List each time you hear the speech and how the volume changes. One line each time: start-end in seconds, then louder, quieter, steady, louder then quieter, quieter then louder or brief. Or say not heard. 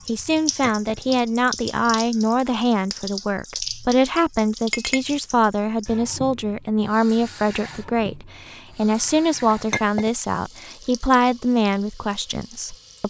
0.1-13.0 steady.